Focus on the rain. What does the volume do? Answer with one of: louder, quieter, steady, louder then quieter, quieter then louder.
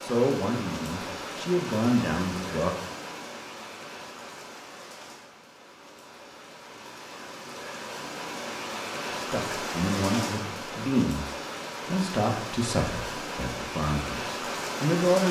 quieter then louder.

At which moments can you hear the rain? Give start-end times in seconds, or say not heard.
0.0-15.2.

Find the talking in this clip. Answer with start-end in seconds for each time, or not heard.
0.0-2.7, 9.2-15.2.